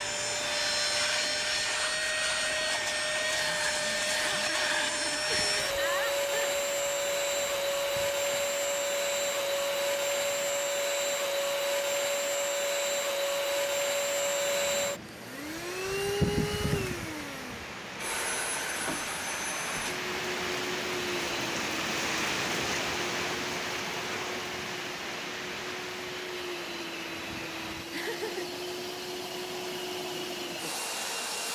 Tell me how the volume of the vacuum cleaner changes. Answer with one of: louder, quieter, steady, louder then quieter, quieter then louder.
quieter.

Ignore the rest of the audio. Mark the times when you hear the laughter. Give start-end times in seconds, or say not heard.
4.1-6.6, 27.9-28.6.